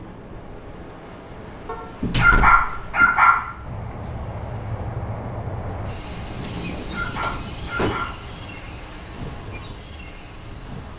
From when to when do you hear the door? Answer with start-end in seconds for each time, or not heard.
2.0-3.2, 6.5-8.2.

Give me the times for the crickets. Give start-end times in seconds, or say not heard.
3.6-10.9.